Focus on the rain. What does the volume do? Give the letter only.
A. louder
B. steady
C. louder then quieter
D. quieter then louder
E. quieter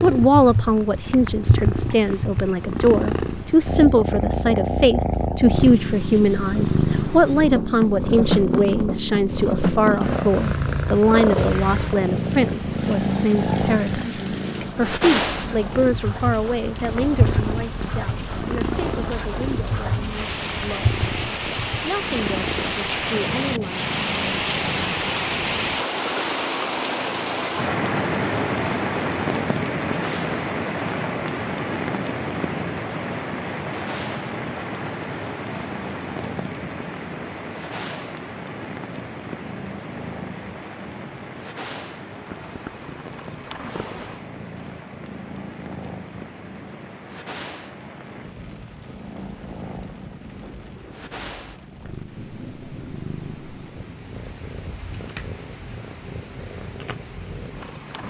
C.